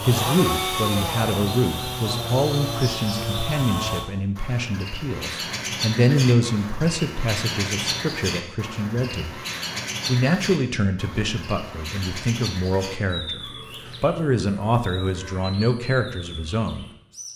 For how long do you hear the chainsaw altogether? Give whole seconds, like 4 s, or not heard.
4 s.